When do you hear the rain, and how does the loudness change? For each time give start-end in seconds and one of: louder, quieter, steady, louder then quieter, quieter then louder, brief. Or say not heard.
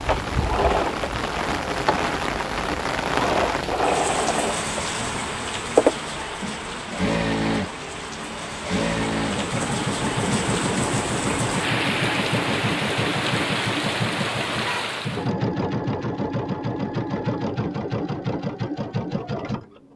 0.0-15.3 quieter then louder.